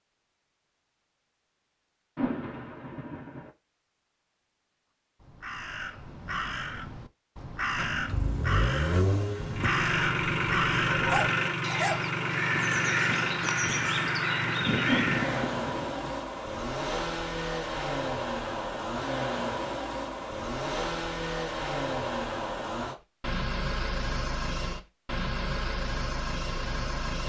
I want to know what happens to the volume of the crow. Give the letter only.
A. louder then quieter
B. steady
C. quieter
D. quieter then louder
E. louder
E.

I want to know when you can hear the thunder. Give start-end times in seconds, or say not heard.
2.1-3.5, 14.8-16.2.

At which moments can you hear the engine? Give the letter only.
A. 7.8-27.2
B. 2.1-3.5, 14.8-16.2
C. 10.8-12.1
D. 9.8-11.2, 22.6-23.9
A.